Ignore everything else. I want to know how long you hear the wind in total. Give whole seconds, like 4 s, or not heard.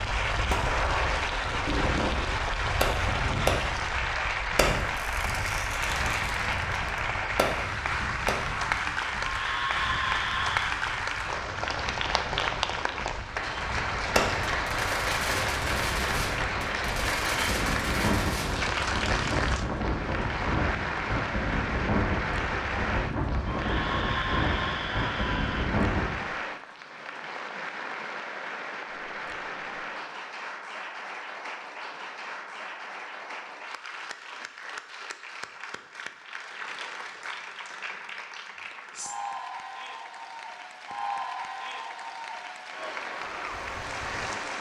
26 s.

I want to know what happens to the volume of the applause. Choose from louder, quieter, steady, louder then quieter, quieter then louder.
quieter.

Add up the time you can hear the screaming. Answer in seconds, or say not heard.
4 s.